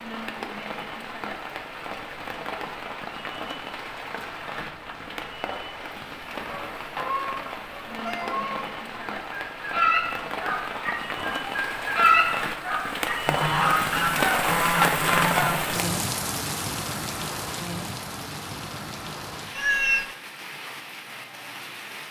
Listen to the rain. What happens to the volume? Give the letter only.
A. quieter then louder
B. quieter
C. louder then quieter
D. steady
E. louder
C.